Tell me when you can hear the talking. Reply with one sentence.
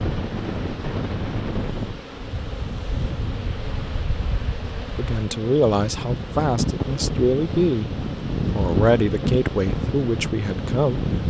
The talking can be heard from 5.0 to 11.1 s.